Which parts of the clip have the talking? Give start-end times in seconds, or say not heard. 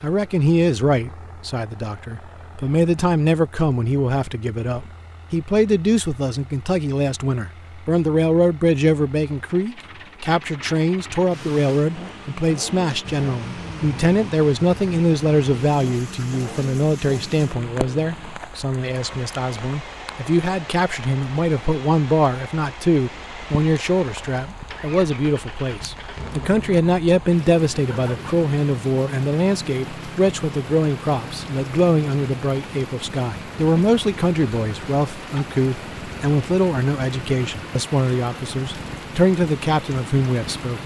0.0-40.8.